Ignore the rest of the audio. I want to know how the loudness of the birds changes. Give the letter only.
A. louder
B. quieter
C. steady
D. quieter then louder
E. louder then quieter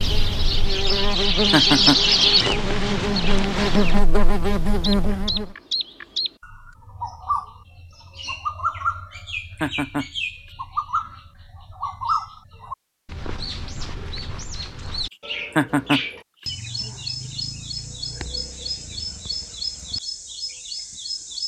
B.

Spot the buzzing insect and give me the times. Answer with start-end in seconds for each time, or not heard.
0.0-5.5.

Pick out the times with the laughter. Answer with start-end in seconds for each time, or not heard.
1.5-2.0, 9.6-10.1, 15.6-16.0.